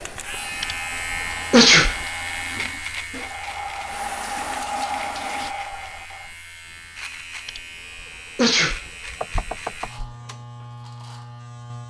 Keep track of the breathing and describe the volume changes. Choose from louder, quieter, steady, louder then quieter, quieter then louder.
louder.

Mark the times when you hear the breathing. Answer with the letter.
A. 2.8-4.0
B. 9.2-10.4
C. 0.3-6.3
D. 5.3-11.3
C.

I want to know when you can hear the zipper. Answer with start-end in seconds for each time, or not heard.
not heard.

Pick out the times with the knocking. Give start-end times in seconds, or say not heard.
9.2-10.4.